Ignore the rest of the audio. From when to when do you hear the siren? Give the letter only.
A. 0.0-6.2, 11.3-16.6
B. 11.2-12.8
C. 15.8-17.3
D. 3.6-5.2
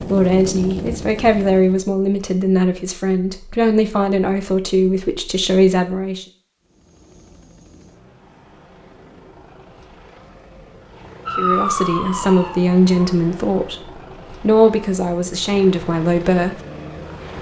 B.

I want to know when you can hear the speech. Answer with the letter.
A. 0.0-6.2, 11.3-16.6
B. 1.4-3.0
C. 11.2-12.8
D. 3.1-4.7
A.